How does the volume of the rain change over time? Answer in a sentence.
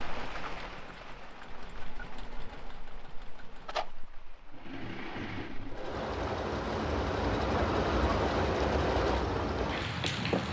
The volume of the rain goes down, then up.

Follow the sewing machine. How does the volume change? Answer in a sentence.
The loudness of the sewing machine goes up.